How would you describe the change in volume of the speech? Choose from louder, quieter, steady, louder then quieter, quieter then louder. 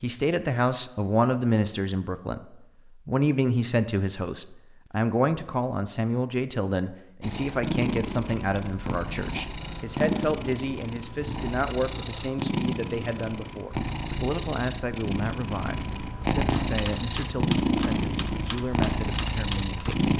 quieter.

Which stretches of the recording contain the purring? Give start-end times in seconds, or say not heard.
7.2-20.1.